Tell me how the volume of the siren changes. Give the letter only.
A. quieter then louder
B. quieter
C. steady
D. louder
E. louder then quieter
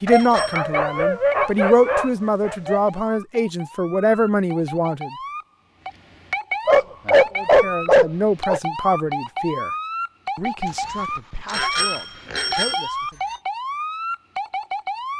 D.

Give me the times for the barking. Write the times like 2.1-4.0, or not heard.
0.1-2.8, 6.7-8.6, 10.7-12.8.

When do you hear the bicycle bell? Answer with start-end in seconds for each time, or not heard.
0.1-0.6, 11.4-13.3.